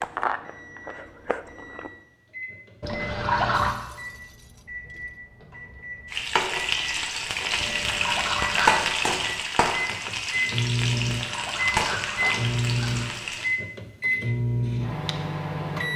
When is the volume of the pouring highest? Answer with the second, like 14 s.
3 s.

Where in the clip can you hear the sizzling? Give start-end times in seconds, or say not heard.
6.1-13.5.